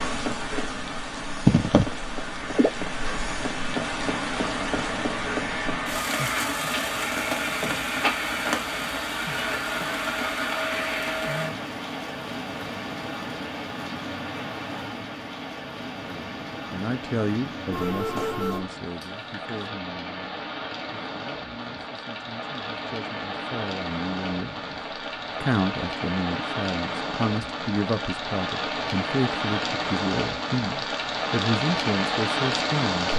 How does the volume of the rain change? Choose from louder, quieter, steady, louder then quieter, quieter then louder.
quieter then louder.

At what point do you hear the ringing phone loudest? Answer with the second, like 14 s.
18 s.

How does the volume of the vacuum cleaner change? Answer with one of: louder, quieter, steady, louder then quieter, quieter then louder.
louder.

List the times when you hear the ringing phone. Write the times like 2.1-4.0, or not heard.
17.7-19.7.